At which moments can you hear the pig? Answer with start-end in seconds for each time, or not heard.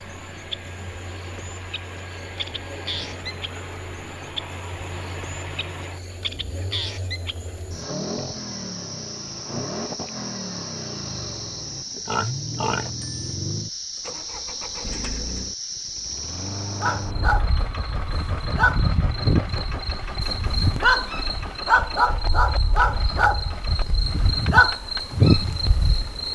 12.1-13.2.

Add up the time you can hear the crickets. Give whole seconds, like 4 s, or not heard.
26 s.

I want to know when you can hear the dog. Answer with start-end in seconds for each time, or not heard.
16.8-25.8.